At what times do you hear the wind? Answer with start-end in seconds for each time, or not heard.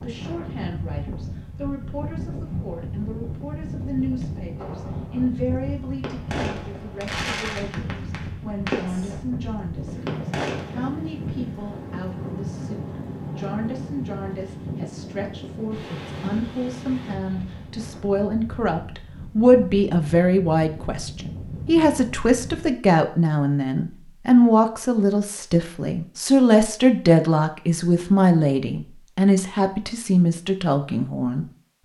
0.0-22.7.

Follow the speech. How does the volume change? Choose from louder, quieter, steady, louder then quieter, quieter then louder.
louder.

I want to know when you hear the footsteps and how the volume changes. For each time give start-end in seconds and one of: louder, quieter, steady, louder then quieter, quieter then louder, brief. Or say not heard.
not heard.